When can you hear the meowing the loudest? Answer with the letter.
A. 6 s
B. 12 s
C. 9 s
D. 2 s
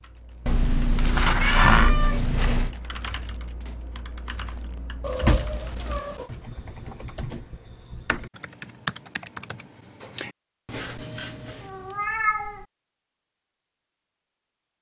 D.